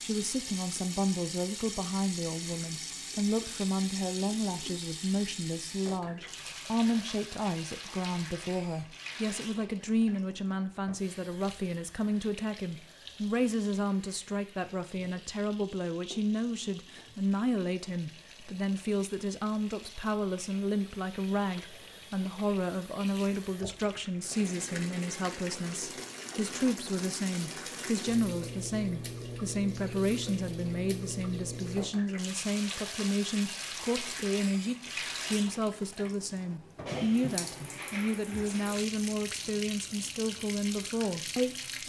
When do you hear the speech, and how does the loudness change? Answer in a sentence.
You can hear the speech from 0.0 to 41.8 s, at a steady volume.